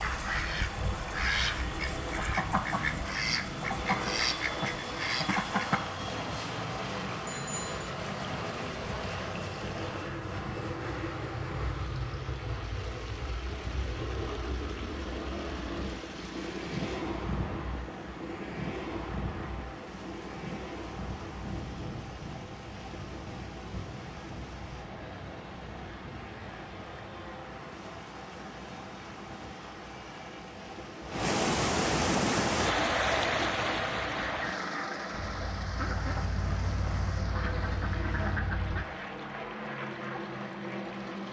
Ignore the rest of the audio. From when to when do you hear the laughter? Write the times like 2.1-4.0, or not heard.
not heard.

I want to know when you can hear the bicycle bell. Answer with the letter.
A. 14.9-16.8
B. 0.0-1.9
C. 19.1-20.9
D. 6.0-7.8
D.